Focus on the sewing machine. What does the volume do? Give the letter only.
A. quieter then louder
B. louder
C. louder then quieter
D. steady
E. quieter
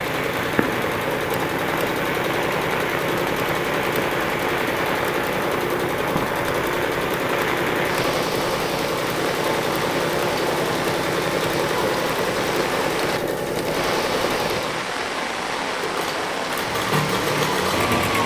D.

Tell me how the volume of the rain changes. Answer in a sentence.
The volume of the rain stays about the same.